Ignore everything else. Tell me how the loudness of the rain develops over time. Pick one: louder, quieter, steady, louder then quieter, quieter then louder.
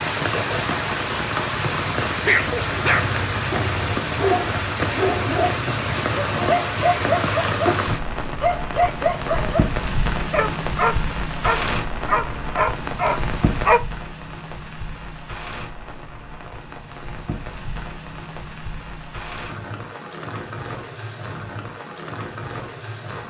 quieter.